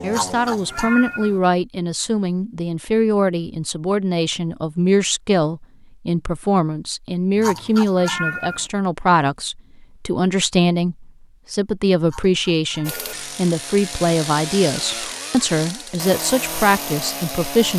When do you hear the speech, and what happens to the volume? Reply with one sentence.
You can hear the speech from 0.0 to 17.7 s, at a steady volume.